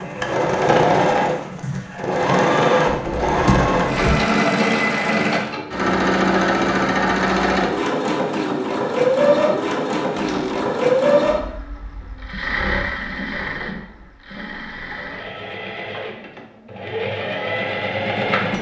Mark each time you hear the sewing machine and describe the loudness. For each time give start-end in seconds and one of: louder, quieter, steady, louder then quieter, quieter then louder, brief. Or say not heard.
0.0-18.5 quieter.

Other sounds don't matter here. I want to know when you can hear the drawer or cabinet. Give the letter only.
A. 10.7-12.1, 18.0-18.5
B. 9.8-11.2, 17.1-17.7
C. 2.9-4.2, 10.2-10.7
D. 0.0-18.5
C.